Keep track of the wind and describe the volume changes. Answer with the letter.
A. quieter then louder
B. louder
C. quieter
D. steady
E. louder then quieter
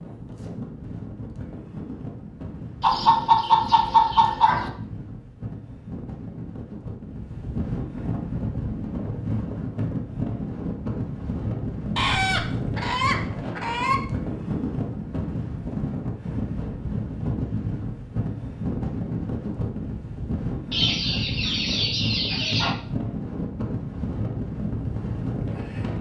B.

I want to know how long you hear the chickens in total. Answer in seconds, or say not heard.
6 s.